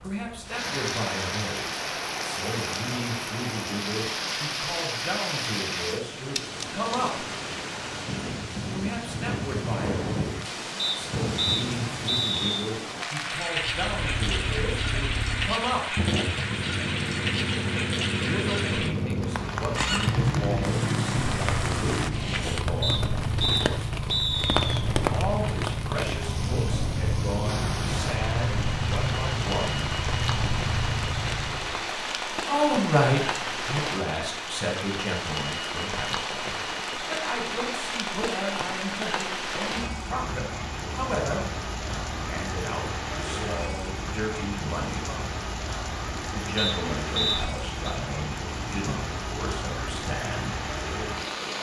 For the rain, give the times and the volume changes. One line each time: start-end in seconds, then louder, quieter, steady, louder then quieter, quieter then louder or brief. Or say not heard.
0.0-51.5 steady.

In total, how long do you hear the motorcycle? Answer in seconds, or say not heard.
18 s.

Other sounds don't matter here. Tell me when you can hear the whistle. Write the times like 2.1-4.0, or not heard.
10.8-12.4, 22.8-24.9, 46.5-48.0.